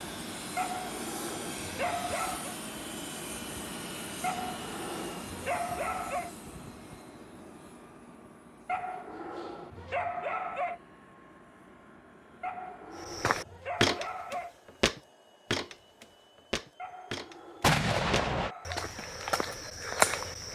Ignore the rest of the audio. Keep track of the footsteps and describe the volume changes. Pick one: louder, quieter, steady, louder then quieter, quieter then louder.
quieter then louder.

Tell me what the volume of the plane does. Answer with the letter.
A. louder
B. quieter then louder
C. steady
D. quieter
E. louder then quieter
D.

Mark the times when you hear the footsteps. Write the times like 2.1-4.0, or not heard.
13.0-20.5.